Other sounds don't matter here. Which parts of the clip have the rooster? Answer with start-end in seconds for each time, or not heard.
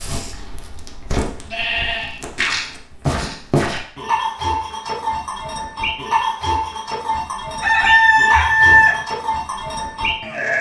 7.6-8.9.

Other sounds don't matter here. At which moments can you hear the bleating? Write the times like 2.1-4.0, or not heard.
0.0-10.5.